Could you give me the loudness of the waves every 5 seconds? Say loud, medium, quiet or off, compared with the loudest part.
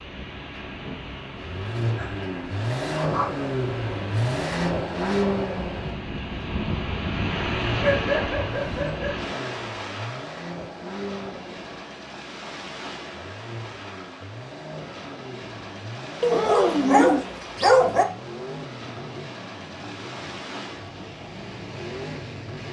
medium, loud, medium, medium, medium.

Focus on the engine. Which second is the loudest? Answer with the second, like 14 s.
5 s.